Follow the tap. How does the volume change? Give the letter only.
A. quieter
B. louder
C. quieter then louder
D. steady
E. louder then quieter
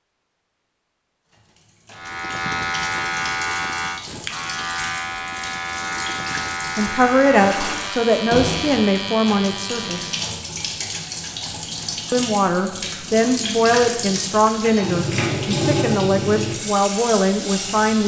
B.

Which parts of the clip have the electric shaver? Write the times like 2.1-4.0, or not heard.
1.9-10.5.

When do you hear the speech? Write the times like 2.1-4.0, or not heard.
6.8-10.1, 12.1-18.0.